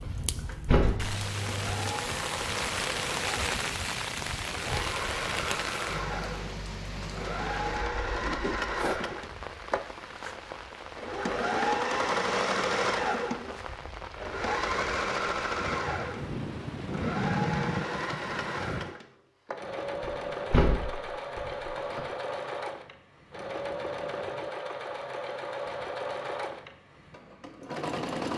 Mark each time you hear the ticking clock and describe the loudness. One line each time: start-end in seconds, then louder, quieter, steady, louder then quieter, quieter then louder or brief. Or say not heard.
not heard.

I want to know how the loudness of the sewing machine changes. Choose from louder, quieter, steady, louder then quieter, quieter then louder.
louder then quieter.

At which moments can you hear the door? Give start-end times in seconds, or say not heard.
0.2-1.1, 20.0-22.0.